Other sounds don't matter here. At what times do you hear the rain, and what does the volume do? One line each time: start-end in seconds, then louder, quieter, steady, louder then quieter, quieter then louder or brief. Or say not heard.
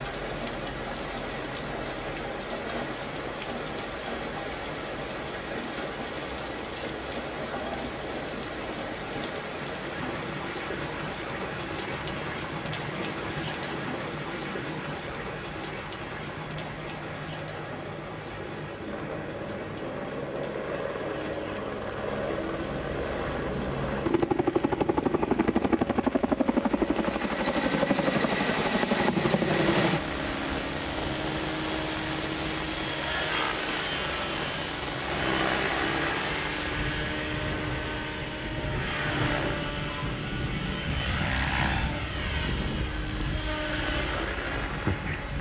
0.0-45.3 quieter then louder.